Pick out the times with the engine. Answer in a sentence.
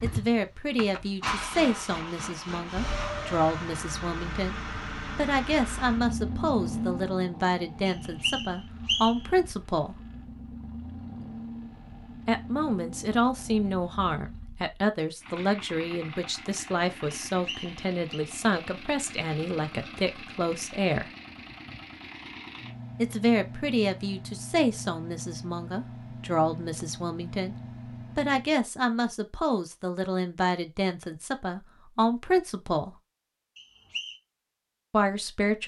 The engine can be heard from 0.0 to 28.6 s.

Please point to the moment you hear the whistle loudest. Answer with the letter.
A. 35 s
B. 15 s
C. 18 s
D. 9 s
D.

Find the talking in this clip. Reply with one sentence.
You can hear the talking from 0.0 to 4.5 s, from 5.2 to 10.0 s, from 12.2 to 21.1 s, from 22.9 to 27.6 s, from 28.1 to 33.0 s and from 34.9 to 35.6 s.